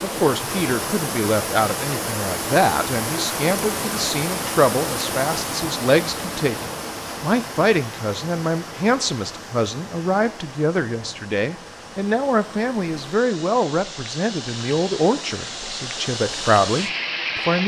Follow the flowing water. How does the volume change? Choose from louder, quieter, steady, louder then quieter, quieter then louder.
quieter then louder.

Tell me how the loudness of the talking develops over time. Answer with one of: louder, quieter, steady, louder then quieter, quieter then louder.
steady.